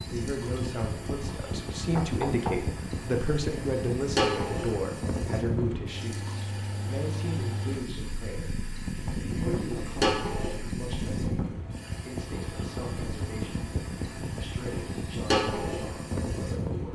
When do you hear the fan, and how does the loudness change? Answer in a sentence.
The fan can be heard from 0.0 to 16.8 s, at a steady volume.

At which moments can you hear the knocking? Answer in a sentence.
The knocking can be heard from 1.9 to 2.6 s and from 9.5 to 10.2 s.